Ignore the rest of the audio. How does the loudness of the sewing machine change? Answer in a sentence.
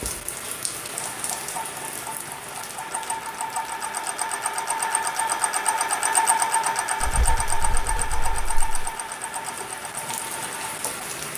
The volume of the sewing machine goes up, then down.